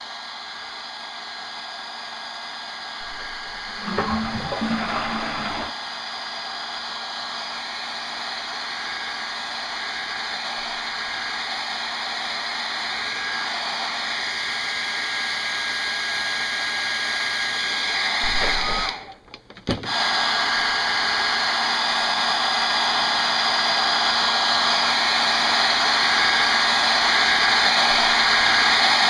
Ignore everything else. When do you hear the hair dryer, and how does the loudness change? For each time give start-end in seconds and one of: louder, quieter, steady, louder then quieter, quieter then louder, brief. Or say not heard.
0.0-29.0 louder.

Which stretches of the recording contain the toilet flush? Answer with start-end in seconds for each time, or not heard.
3.0-5.8, 18.2-18.9.